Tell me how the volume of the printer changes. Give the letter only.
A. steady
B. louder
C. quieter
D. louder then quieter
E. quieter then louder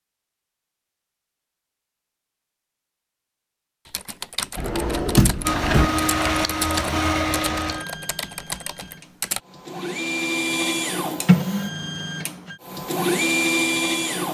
E.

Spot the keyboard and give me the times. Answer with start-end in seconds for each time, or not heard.
3.9-9.4.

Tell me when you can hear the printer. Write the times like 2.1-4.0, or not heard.
5.4-14.2.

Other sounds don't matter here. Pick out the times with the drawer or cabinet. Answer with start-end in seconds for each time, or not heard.
4.5-5.9.